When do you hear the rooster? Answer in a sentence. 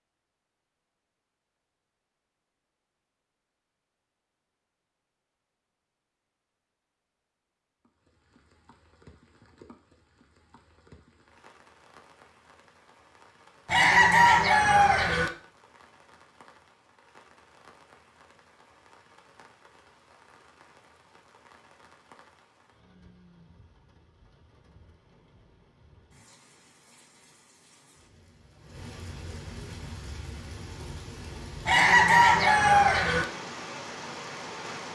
You can hear the rooster from 13.7 to 15.3 s and from 31.6 to 33.2 s.